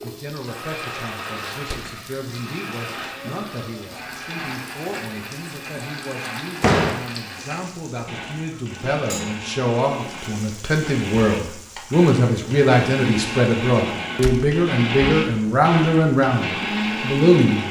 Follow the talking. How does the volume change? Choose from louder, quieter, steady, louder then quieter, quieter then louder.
louder.